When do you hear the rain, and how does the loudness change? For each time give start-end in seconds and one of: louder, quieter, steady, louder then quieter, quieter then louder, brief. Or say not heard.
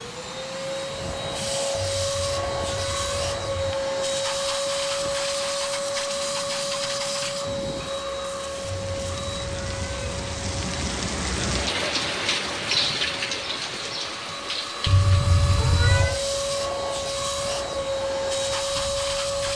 0.0-19.5 louder then quieter.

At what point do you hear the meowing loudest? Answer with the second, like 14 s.
16 s.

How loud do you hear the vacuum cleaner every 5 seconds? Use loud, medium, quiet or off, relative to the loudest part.
loud, loud, medium, loud.